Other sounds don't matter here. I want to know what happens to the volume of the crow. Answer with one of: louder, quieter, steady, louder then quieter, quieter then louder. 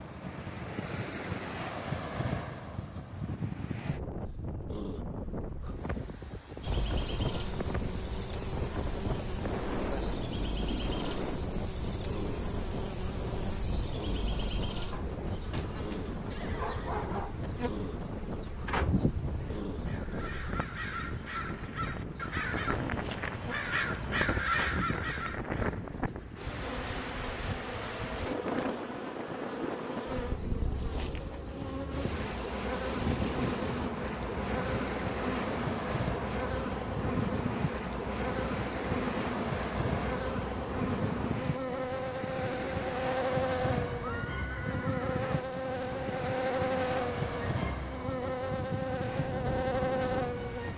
louder.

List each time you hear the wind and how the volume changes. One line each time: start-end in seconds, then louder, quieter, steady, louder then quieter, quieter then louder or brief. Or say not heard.
0.0-50.7 steady.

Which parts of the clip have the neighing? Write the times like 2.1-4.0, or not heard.
16.3-17.1, 44.0-45.2.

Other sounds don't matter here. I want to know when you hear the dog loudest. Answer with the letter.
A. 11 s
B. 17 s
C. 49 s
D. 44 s
B.